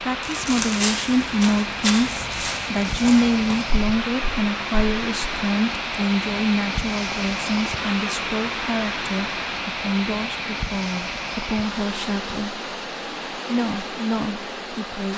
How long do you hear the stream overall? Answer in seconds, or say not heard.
15 s.